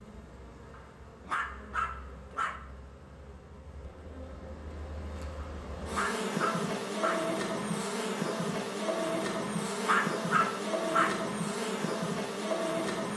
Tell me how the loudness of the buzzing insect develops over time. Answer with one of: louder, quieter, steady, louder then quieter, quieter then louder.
louder.